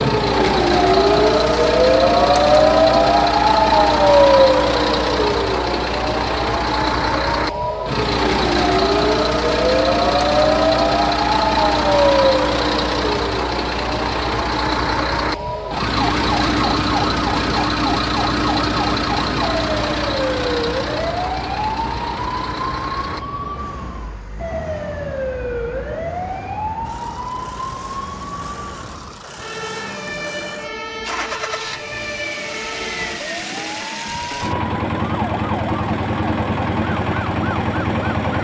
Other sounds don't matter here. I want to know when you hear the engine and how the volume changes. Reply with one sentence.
You can hear the engine from 0.0 to 38.3 s, getting quieter then louder.